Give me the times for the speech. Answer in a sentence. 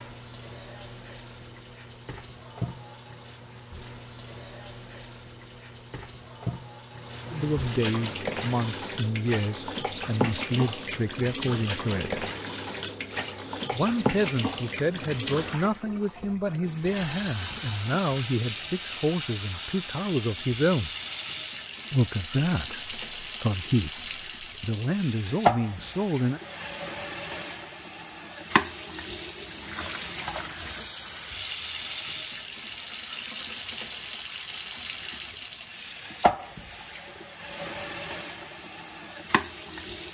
The speech can be heard from 7.3 to 12.2 s, from 13.7 to 20.9 s and from 21.9 to 26.4 s.